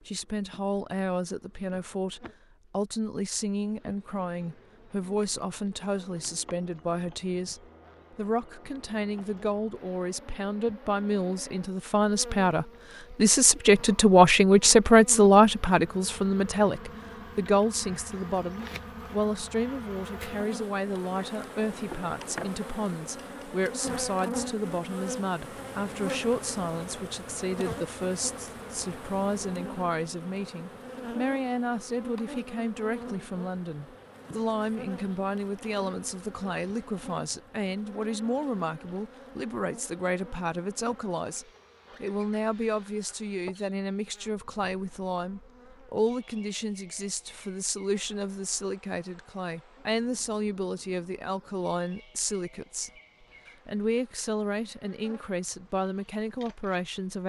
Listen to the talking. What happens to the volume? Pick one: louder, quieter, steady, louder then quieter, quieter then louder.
louder then quieter.